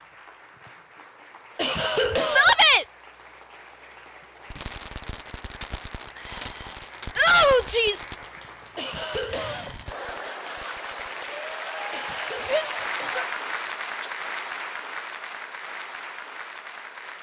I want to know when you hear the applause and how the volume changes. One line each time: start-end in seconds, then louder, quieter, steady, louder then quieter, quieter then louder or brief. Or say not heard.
0.0-17.1 louder.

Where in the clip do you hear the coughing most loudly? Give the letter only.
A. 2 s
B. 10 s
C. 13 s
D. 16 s
A.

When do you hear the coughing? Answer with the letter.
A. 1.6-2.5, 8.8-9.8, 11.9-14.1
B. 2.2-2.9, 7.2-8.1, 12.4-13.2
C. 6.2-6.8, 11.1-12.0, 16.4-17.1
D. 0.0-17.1
A.